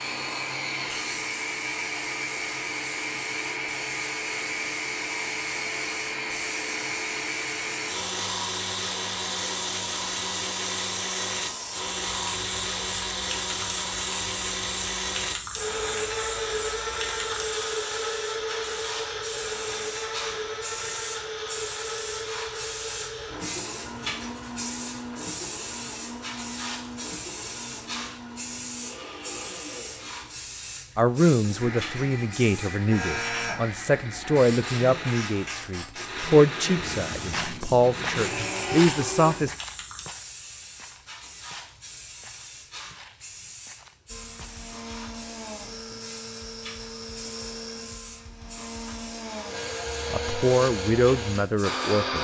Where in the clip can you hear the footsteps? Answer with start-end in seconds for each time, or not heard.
37.3-44.6.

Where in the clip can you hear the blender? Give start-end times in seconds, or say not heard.
0.0-39.5, 44.1-52.2.